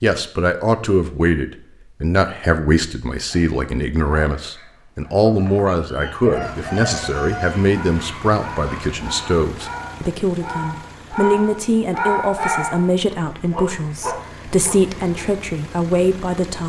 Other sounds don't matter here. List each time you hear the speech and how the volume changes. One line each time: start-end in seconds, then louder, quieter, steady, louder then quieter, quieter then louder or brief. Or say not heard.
0.0-16.6 steady.